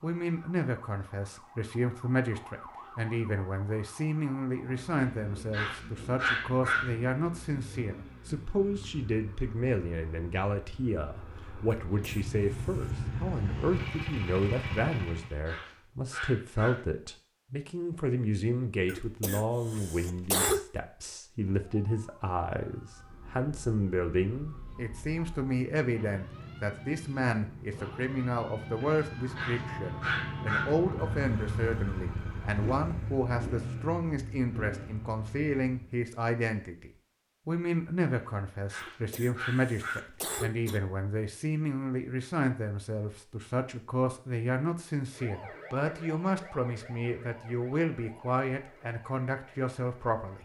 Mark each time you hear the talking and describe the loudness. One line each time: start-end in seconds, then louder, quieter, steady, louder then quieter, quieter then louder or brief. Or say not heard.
0.0-50.3 steady.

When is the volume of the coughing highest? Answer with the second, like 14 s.
20 s.